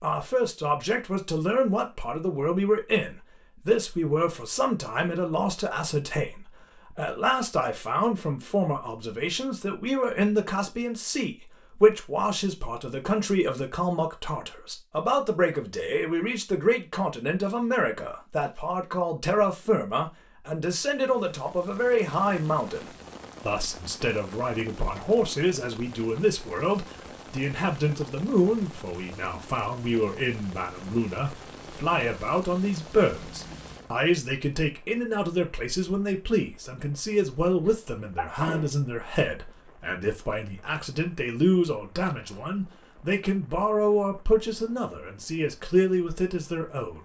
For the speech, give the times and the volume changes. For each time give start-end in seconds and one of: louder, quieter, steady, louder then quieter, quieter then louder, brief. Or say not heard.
0.0-47.0 steady.